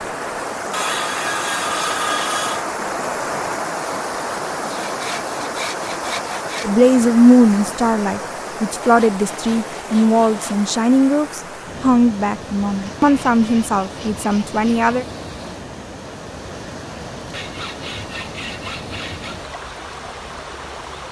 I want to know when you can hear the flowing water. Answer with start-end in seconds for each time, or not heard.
0.0-21.0.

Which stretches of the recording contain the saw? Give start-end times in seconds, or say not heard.
0.7-2.6, 4.7-6.7, 8.8-10.6, 12.8-14.9, 17.2-19.4.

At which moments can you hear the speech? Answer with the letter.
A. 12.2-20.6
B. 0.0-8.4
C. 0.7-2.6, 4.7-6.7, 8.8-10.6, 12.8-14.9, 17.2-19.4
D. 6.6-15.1
D.